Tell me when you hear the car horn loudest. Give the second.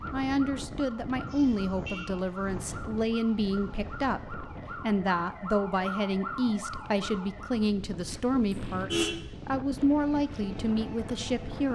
9 s.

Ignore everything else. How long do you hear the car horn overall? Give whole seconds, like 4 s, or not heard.
2 s.